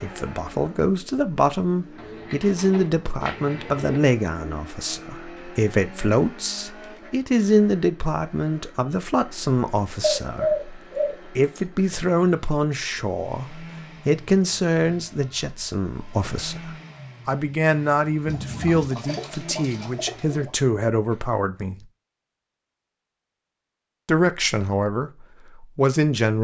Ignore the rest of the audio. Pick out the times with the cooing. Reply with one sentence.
The cooing can be heard from 1.9 to 4.0 s, from 10.0 to 11.6 s and from 18.2 to 20.5 s.